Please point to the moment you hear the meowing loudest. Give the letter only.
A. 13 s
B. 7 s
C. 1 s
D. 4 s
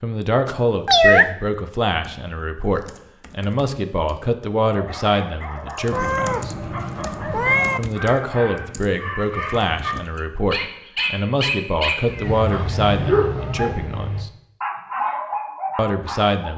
C.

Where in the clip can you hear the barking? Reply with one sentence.
The barking can be heard from 4.7 to 16.2 s.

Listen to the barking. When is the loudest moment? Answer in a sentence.
The volume of the barking peaks at 13 seconds.